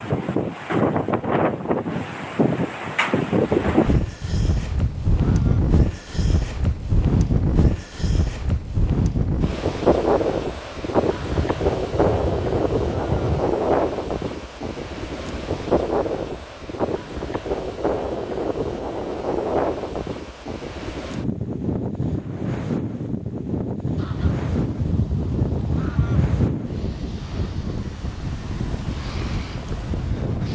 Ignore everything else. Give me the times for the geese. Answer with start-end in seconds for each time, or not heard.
3.5-5.8, 11.1-13.5, 23.9-26.6.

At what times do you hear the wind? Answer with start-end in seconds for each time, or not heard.
0.0-30.5.